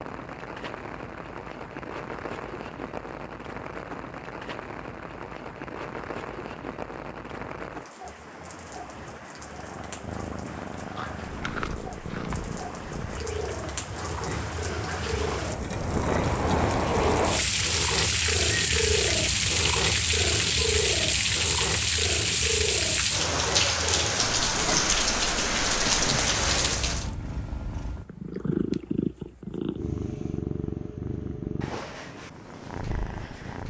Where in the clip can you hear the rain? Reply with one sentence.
The rain can be heard from 0.0 to 27.1 s.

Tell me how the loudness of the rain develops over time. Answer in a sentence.
The volume of the rain goes up.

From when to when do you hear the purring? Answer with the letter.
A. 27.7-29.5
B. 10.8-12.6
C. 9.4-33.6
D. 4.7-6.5
C.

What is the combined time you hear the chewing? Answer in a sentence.
The chewing can be heard for 2 seconds in total.